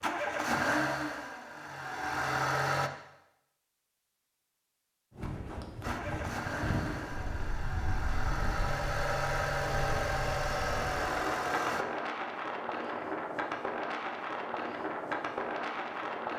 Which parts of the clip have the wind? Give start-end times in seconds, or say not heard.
5.1-16.3.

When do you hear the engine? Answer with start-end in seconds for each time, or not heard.
0.0-2.9, 5.8-11.8.